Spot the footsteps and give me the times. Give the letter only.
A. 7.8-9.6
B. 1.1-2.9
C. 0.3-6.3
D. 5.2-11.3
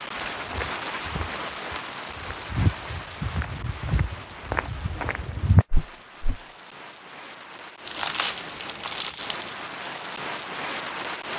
C.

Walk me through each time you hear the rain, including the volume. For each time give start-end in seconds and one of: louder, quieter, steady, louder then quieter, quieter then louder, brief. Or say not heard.
0.0-11.3 quieter then louder.